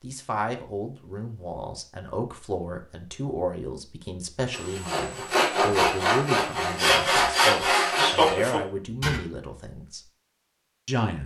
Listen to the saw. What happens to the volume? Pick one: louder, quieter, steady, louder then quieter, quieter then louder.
steady.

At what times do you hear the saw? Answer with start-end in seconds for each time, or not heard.
4.5-9.2.